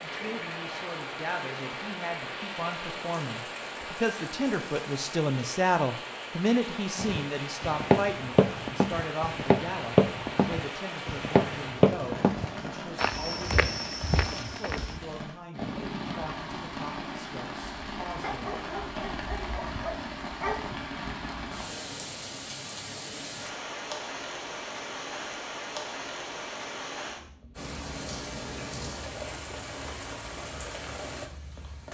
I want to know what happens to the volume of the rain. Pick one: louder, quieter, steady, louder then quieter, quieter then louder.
steady.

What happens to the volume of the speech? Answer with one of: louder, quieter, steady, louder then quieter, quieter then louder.
louder then quieter.